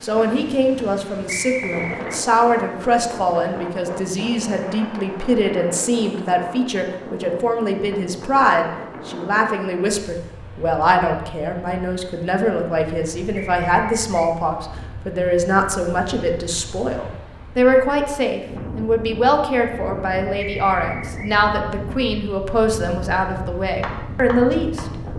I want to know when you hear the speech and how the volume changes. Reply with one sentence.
You can hear the speech from 0.0 to 24.9 s, at a steady volume.